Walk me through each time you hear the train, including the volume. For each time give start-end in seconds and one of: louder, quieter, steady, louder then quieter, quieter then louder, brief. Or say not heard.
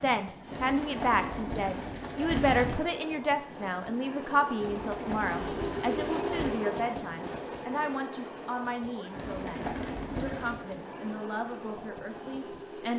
0.0-12.9 louder then quieter.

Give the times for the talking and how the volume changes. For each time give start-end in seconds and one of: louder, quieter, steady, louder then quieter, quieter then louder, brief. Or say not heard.
0.0-12.9 quieter.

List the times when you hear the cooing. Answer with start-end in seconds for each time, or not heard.
0.5-2.8, 4.6-6.5, 9.2-10.7.